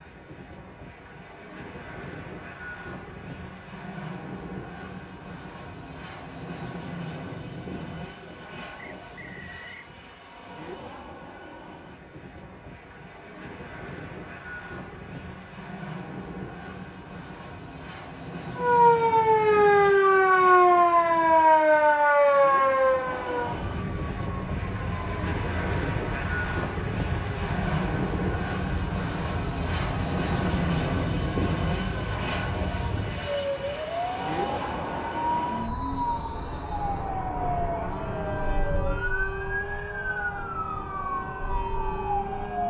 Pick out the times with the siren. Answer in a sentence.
You can hear the siren from 18.6 to 42.6 s.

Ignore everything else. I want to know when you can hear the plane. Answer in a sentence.
The plane can be heard from 0.0 to 42.6 s.